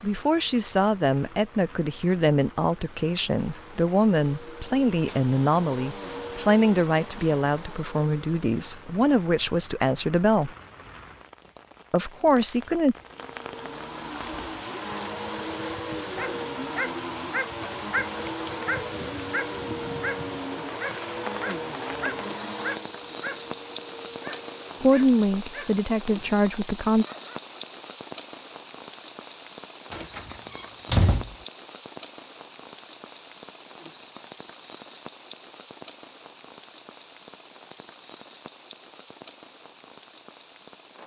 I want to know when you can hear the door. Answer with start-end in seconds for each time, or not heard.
29.9-31.4.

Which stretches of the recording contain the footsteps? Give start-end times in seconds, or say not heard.
not heard.